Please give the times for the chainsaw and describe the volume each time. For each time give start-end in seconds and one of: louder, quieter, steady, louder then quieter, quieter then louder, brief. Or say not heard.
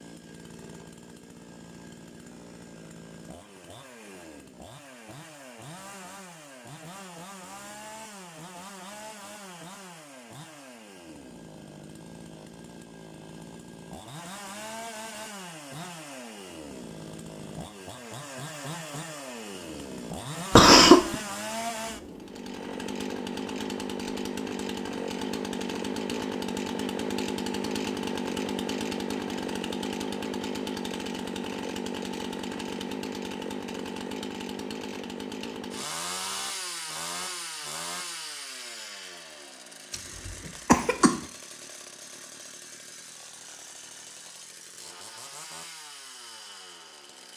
0.0-47.3 louder then quieter.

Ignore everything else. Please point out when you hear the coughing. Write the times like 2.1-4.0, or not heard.
20.6-21.1, 39.9-41.1.